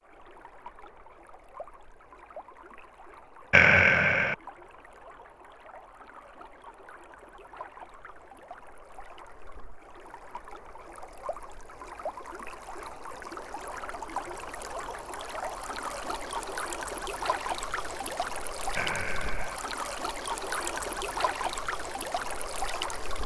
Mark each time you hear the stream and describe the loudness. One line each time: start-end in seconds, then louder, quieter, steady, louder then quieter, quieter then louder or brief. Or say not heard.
0.0-23.2 louder.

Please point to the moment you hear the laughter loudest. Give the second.
4 s.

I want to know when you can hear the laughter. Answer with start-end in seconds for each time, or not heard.
3.5-4.3, 18.8-19.6.